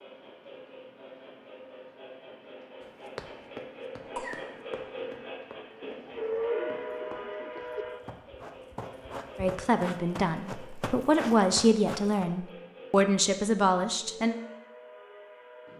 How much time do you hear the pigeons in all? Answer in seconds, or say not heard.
2 s.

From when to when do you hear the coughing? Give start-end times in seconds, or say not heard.
4.0-4.7.